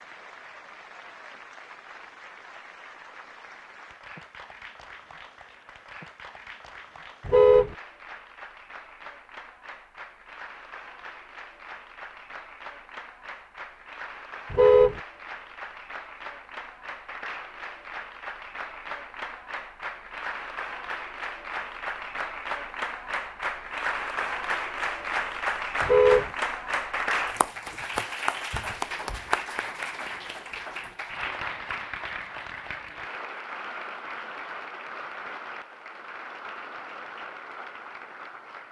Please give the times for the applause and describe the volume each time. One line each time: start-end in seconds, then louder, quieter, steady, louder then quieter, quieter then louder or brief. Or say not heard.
0.0-38.6 louder then quieter.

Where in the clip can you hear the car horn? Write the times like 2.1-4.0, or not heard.
7.2-7.8, 14.5-15.0, 25.8-26.3.